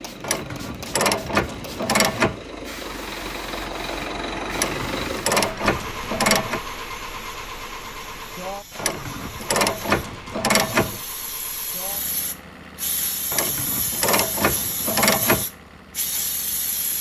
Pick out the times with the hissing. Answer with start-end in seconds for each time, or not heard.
0.0-16.9.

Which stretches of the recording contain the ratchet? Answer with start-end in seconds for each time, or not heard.
0.2-2.4, 4.5-6.6, 8.8-11.0, 13.3-15.4.